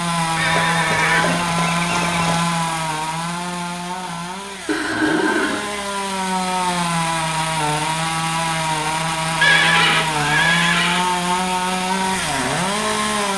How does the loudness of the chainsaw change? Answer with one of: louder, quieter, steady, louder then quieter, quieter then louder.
quieter then louder.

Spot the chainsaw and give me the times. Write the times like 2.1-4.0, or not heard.
0.0-13.3.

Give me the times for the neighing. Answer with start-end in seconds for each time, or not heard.
0.3-2.4, 4.7-5.6, 9.4-11.1.